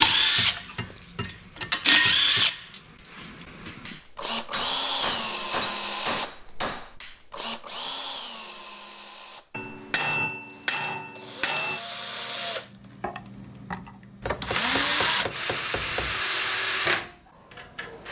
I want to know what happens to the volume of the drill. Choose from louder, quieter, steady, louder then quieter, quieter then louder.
quieter then louder.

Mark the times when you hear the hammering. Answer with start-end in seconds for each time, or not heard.
0.1-2.5, 4.5-7.0, 9.5-11.8, 14.2-16.2.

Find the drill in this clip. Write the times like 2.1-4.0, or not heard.
0.0-18.0.